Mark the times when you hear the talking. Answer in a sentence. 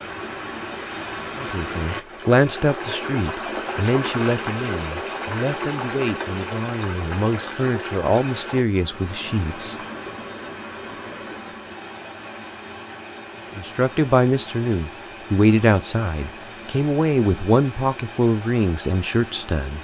You can hear the talking from 1.4 to 9.8 s and from 13.6 to 19.7 s.